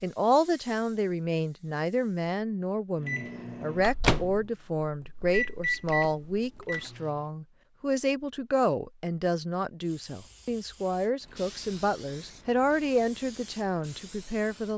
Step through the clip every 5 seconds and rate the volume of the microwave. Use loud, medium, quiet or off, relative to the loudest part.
loud, loud, off.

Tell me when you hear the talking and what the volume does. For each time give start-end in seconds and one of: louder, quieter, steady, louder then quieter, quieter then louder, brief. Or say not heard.
0.0-14.7 steady.